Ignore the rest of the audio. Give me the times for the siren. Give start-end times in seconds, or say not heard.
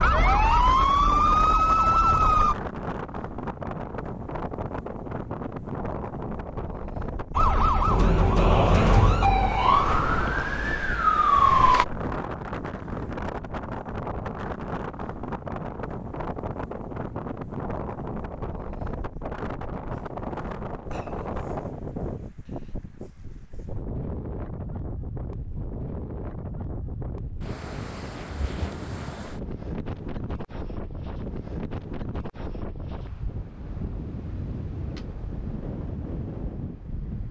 0.0-2.5, 7.3-11.8.